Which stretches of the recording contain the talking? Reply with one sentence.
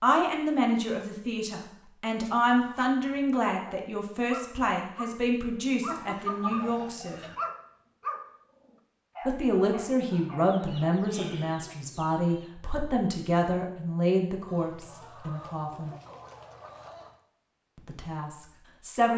The talking can be heard from 0.0 to 7.2 s, from 9.2 to 15.9 s and from 17.8 to 19.1 s.